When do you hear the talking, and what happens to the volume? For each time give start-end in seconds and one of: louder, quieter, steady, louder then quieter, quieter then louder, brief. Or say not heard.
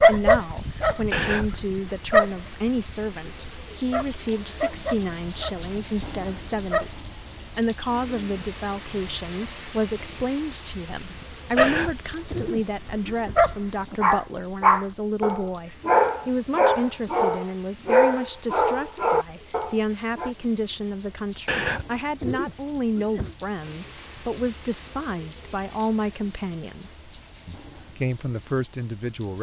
0.0-29.3 steady.